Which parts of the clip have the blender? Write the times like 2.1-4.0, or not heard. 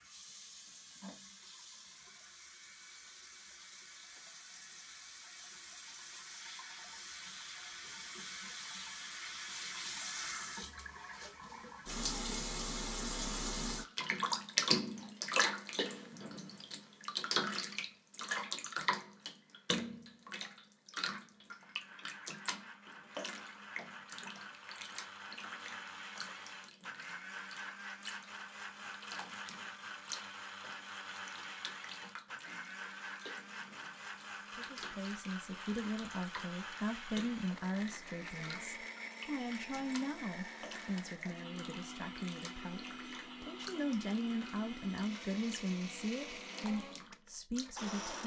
21.5-48.2.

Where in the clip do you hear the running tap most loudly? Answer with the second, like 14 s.
15 s.